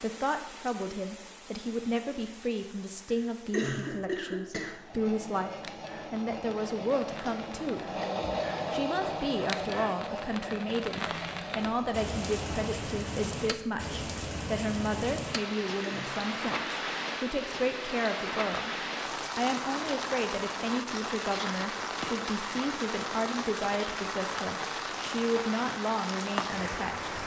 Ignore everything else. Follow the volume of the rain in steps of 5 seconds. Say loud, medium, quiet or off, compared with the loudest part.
quiet, medium, loud, loud, loud, loud.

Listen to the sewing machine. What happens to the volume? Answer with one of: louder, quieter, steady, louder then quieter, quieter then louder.
louder then quieter.